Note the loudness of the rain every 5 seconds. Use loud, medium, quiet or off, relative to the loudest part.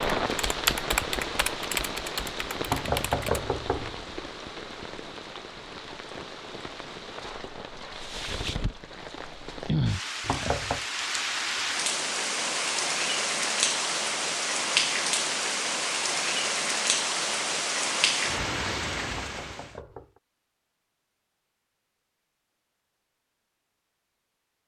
medium, medium, loud, loud, off.